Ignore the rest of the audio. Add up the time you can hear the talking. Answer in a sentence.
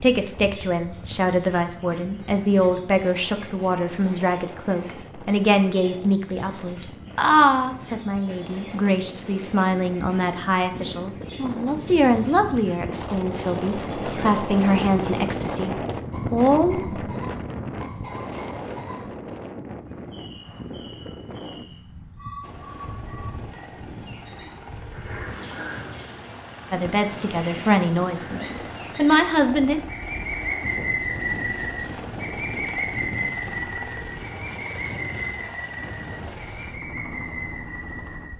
You can hear the talking for 20 seconds altogether.